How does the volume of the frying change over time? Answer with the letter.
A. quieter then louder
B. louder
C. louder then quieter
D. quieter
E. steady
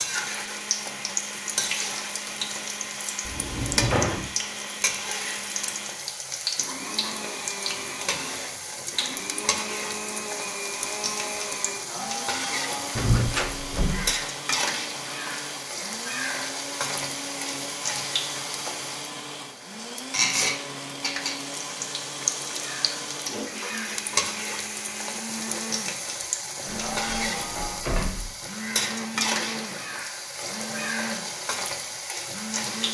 E.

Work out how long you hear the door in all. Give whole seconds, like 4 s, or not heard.
4 s.